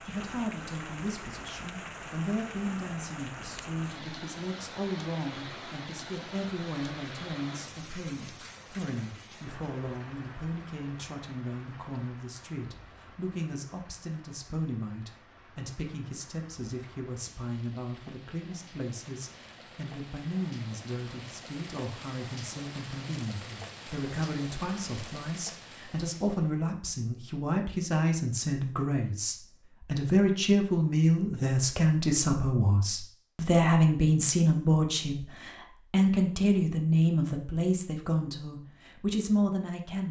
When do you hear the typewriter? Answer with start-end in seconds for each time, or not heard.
not heard.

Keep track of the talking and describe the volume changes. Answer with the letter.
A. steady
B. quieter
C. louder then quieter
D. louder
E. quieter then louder
D.